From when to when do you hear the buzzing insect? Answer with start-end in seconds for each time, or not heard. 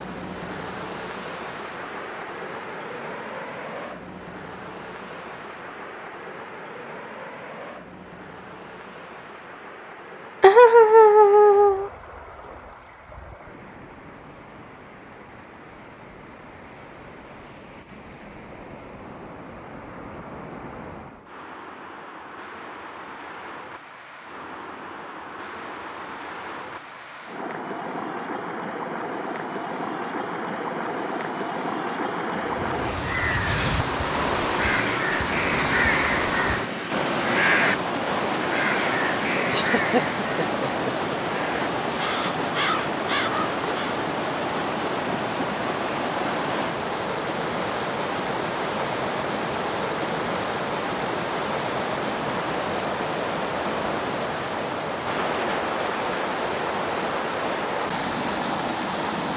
not heard.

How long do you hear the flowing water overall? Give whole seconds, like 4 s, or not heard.
59 s.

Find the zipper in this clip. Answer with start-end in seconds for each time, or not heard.
not heard.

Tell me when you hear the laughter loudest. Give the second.
11 s.